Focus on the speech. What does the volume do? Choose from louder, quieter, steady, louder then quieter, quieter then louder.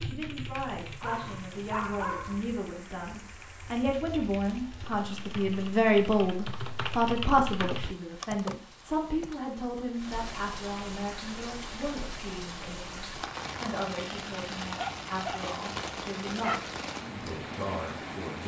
louder then quieter.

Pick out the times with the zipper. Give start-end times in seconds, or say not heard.
not heard.